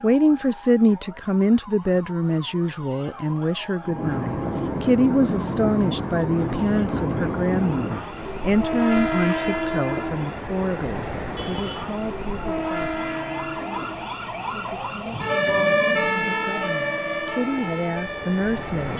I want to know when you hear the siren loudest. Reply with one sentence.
The loudest moment of the siren is at 16 seconds.